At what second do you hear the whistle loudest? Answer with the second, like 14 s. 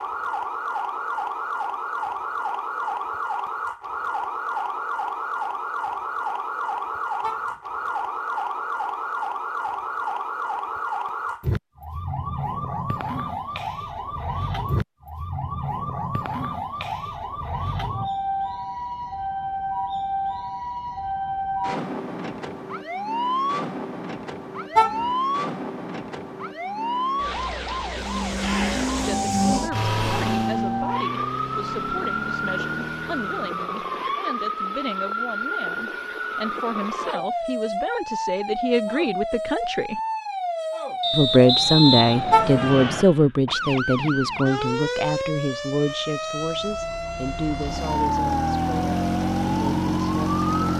42 s.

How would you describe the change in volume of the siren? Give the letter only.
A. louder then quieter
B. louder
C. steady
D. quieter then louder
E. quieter
C.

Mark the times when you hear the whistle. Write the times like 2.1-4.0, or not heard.
41.0-43.0.